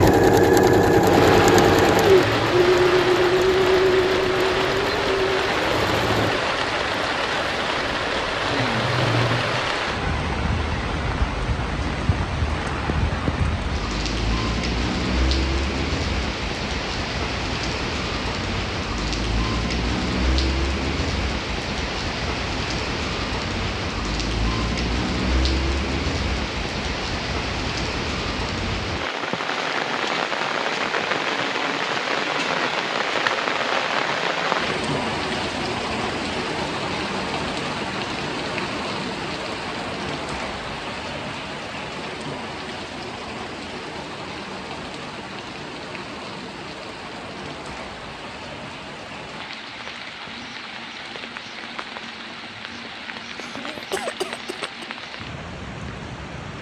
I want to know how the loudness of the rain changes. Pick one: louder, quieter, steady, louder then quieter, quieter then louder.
quieter.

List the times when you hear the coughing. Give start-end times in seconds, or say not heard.
53.4-54.9.